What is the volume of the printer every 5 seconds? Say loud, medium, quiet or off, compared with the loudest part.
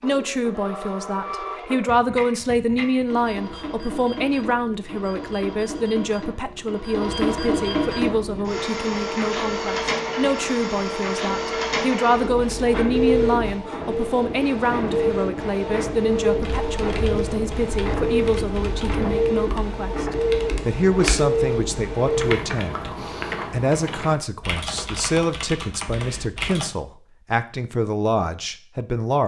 medium, loud, loud, loud, loud, off.